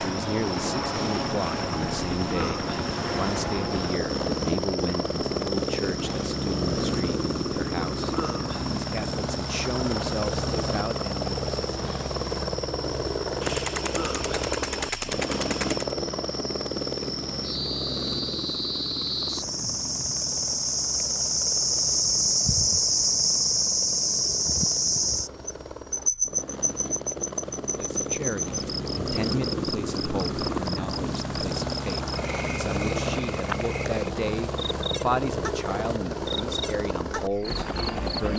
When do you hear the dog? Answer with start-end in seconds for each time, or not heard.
not heard.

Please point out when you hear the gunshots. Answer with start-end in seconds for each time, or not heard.
13.4-15.9.